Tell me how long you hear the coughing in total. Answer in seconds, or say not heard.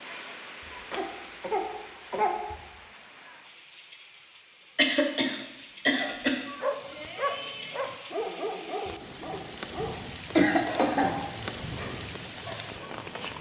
4 s.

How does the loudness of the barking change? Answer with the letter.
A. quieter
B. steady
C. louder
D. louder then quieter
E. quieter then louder
A.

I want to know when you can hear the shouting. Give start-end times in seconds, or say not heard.
6.5-7.8.